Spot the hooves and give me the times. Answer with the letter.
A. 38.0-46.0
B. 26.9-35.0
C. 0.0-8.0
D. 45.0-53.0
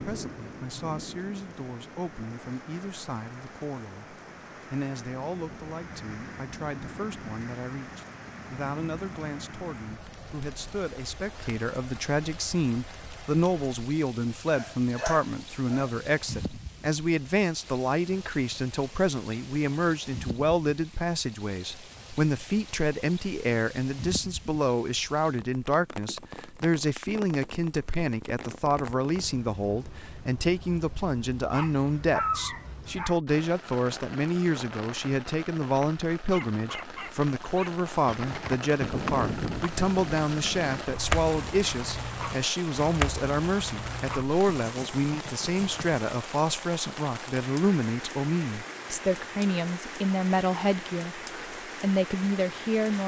A.